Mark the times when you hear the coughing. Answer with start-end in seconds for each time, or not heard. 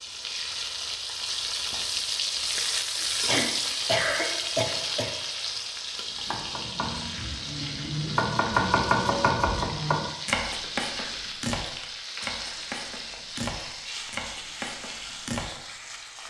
3.2-5.1.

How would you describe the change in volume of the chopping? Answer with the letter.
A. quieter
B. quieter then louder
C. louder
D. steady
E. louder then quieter
E.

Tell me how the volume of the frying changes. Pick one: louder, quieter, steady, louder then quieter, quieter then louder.
quieter.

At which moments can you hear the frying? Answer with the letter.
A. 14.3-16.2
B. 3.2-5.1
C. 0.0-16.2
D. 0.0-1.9
C.